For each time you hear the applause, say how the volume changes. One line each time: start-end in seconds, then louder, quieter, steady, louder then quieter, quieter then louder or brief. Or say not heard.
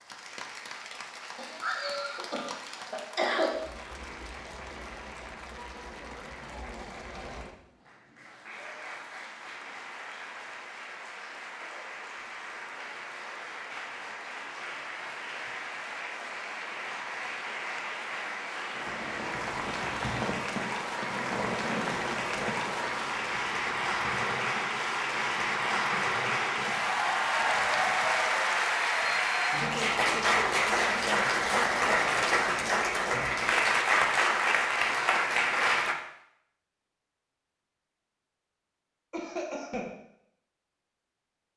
0.0-36.0 louder.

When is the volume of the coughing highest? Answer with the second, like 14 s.
3 s.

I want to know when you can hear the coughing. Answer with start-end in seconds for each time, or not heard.
1.4-3.5, 39.1-40.0.